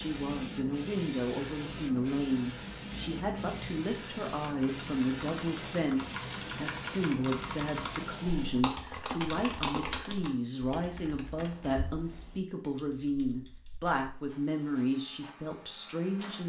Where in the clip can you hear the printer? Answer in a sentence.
The printer can be heard from 0.0 to 8.7 s and from 14.2 to 16.4 s.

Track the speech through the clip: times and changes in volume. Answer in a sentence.
The speech can be heard from 0.0 to 16.4 s, at a steady volume.